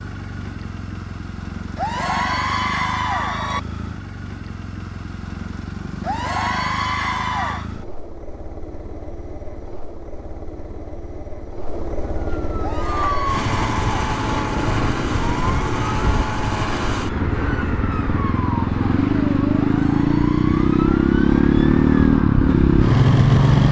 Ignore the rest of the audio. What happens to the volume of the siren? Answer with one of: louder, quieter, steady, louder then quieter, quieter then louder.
quieter.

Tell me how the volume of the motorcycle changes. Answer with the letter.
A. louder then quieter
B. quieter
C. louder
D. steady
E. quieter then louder
C.